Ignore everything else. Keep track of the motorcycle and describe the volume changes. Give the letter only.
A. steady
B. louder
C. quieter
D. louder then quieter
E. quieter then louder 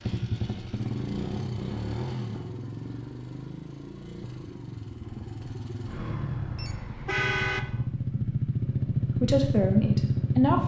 E.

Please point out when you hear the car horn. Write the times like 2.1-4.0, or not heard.
6.5-7.7.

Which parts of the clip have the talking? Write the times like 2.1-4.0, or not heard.
9.2-10.6.